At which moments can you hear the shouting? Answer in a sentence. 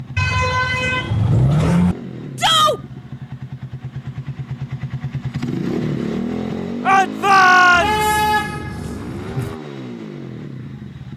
The shouting can be heard from 2.4 to 2.8 s and from 6.8 to 8.1 s.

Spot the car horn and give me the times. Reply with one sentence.
You can hear the car horn from 0.1 to 1.9 s and from 7.7 to 9.6 s.